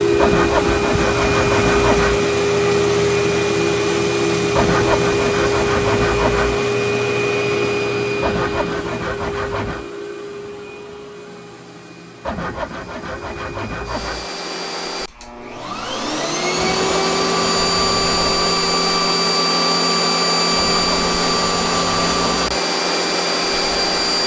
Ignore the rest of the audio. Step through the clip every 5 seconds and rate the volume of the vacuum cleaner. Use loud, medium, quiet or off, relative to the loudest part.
loud, loud, quiet, loud, loud.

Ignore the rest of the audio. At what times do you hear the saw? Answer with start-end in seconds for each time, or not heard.
0.1-2.2, 4.5-6.6, 8.2-9.8, 12.2-14.3, 16.6-18.5, 20.6-22.6.